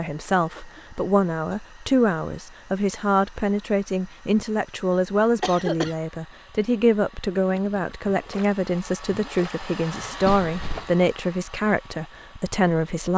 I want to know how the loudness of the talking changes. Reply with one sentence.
The volume of the talking stays about the same.